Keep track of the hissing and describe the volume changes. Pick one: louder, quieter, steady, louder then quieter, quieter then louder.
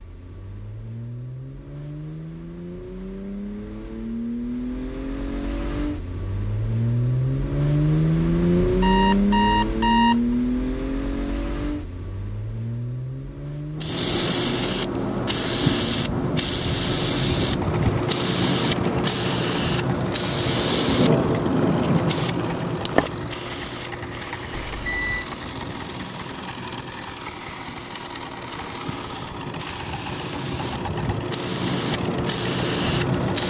quieter then louder.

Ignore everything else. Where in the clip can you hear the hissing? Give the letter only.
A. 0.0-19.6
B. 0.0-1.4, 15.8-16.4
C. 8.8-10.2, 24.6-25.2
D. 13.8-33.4
D.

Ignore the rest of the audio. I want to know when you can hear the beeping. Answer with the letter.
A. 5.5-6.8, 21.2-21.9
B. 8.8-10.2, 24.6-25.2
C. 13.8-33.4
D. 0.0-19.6
B.